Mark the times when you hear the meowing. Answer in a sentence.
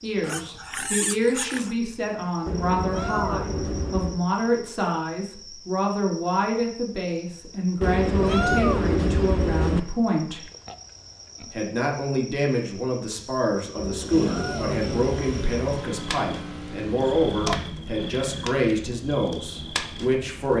You can hear the meowing from 2.5 to 4.2 s, from 7.8 to 9.8 s and from 13.8 to 15.8 s.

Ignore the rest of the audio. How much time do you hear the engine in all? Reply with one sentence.
You can hear the engine for 4 seconds altogether.